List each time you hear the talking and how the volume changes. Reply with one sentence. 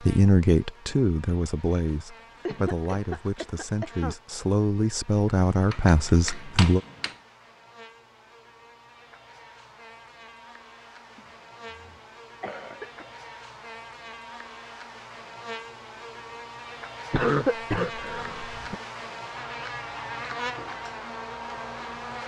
You can hear the talking from 0.1 to 6.8 s, getting quieter then louder.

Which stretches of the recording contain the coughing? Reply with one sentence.
You can hear the coughing from 2.5 to 4.2 s, from 11.2 to 13.1 s and from 17.1 to 18.8 s.